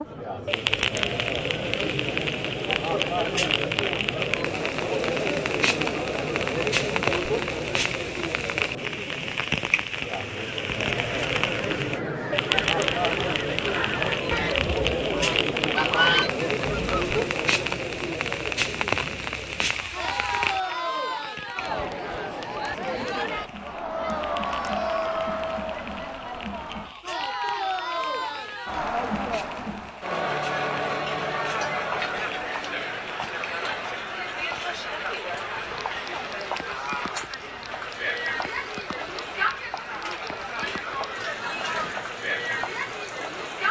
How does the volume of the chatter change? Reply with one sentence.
The volume of the chatter stays about the same.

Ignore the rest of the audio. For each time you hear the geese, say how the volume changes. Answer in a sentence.
You can hear the geese from 10.4 to 17.2 s, getting louder.